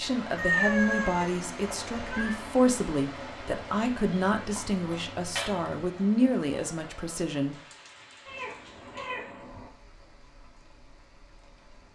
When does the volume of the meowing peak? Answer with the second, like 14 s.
1 s.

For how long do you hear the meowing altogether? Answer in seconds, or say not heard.
5 s.